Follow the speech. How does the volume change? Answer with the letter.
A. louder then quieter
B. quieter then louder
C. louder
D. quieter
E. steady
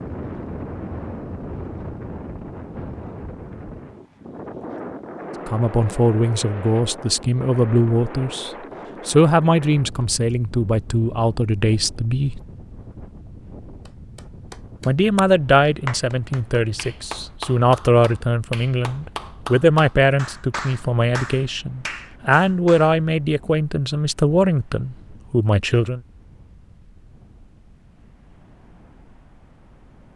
E.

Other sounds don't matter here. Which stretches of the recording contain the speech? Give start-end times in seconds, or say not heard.
5.5-12.4, 14.8-26.0.